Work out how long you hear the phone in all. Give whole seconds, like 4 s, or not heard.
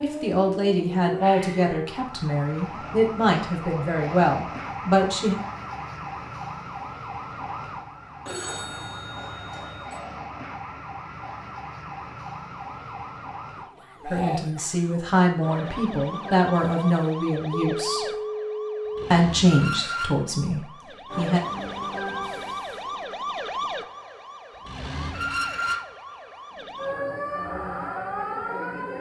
3 s.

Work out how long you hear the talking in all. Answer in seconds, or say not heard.
12 s.